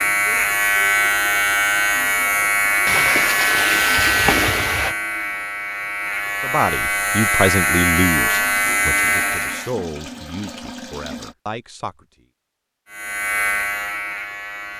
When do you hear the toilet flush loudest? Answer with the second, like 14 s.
4 s.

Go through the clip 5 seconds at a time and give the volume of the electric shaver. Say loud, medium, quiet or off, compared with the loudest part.
loud, loud, medium.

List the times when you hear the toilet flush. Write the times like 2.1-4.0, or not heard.
2.9-5.0, 8.6-11.3.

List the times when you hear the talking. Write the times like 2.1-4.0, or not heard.
6.4-12.1.